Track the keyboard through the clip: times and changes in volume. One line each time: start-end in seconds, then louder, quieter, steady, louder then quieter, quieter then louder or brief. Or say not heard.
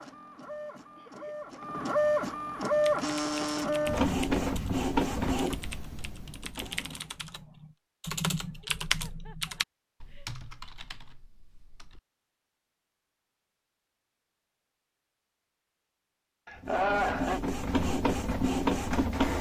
2.6-12.0 louder then quieter.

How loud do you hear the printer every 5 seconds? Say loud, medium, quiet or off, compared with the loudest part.
loud, medium, off, loud.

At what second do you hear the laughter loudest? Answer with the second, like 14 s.
17 s.